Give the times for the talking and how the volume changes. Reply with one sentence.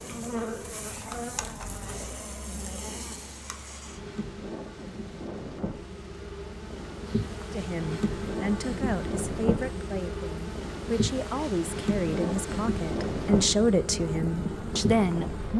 You can hear the talking from 7.5 to 15.5 s, getting louder.